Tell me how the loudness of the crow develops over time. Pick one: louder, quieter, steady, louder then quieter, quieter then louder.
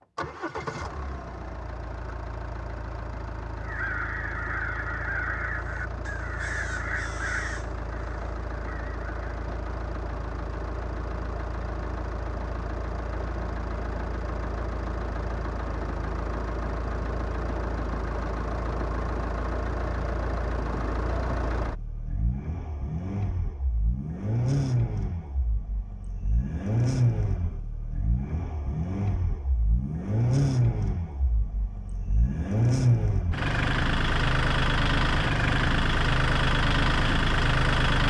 quieter.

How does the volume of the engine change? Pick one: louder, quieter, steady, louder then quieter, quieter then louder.
louder.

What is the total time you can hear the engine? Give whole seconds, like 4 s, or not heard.
38 s.